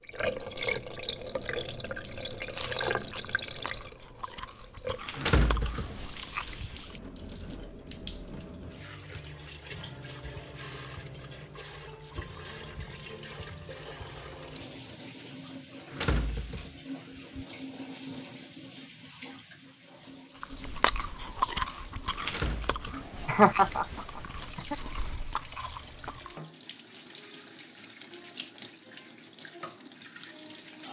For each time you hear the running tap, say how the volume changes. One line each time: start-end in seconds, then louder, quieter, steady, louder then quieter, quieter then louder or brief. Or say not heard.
0.0-30.8 quieter.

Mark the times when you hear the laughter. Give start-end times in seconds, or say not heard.
23.2-24.8.